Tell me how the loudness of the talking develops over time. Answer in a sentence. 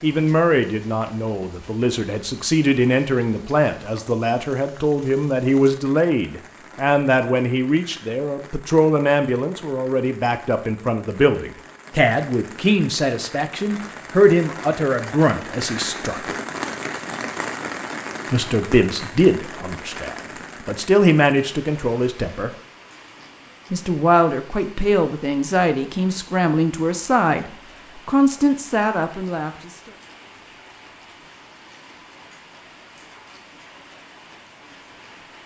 The volume of the talking stays about the same.